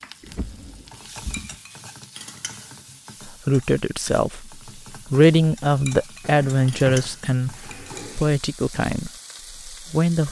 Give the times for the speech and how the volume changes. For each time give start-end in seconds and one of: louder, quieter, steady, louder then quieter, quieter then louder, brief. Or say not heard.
3.2-10.2 louder then quieter.